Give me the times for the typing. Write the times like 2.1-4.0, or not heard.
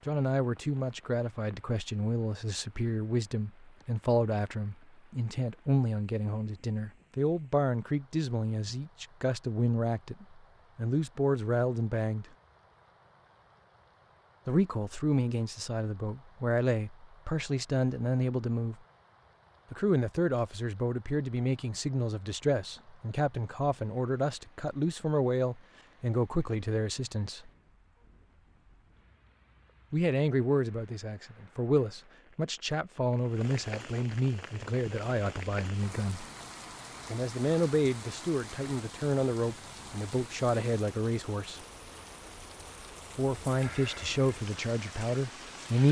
not heard.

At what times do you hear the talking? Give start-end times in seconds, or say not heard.
0.1-12.2, 14.4-18.8, 19.7-27.5, 29.9-36.2, 37.0-41.6, 43.1-45.8.